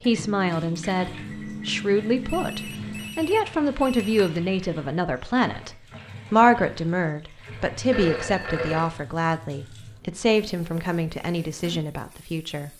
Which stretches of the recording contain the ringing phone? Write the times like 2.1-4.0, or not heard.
2.2-4.4, 7.9-8.9.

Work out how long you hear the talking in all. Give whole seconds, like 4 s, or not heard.
13 s.